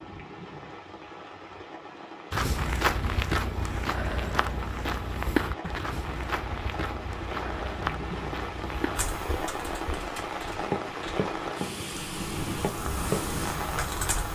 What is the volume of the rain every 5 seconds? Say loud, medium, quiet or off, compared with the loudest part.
medium, loud, loud.